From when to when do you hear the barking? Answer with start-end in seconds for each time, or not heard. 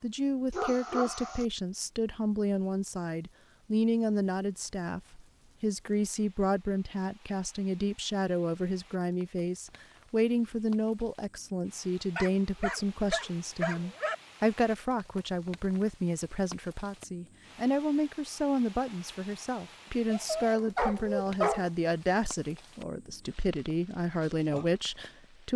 0.5-1.4, 12.2-14.2, 20.1-21.7.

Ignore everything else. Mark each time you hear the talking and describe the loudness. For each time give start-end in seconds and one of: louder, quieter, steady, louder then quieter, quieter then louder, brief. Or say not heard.
0.0-25.5 steady.